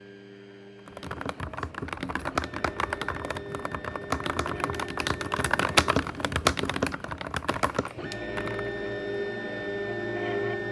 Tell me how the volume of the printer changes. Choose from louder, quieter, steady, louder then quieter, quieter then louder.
louder.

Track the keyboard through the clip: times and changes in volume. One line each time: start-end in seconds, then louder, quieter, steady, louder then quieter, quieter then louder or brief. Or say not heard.
0.8-8.7 louder then quieter.